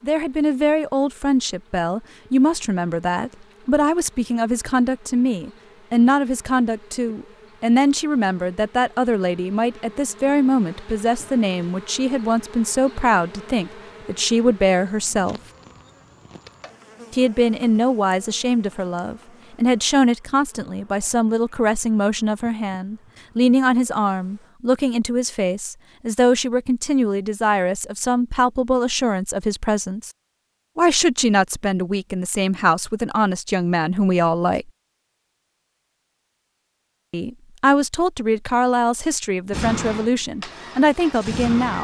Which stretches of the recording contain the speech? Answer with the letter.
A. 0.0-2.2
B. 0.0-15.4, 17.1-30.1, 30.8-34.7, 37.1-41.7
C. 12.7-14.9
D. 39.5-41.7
B.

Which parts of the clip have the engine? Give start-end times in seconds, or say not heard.
39.5-41.7.